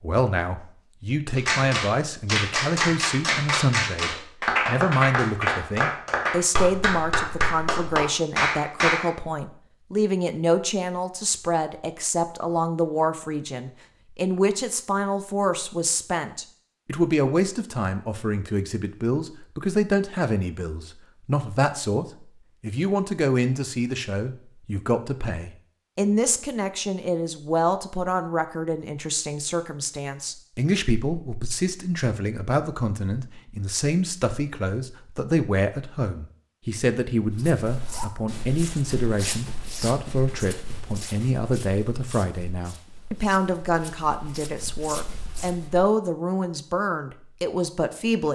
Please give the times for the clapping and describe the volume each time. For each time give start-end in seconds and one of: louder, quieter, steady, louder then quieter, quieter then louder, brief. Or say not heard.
1.4-9.1 steady.